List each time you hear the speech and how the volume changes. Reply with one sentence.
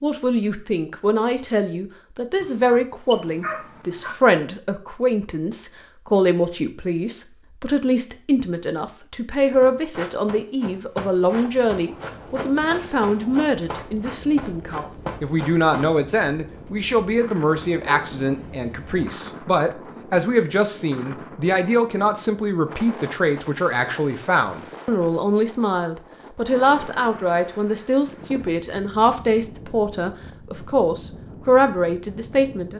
The speech can be heard from 0.0 to 32.7 s, at a steady volume.